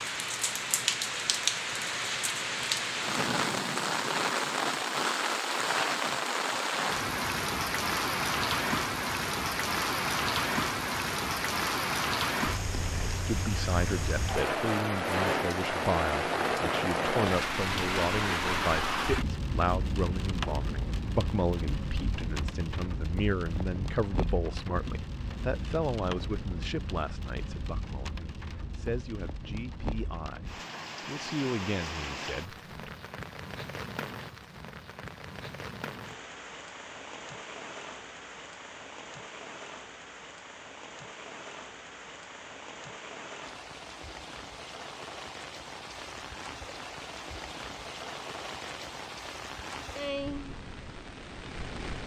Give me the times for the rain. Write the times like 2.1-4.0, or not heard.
0.0-52.0.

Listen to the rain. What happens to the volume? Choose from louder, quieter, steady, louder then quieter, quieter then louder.
quieter.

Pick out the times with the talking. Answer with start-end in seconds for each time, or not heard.
13.1-32.9.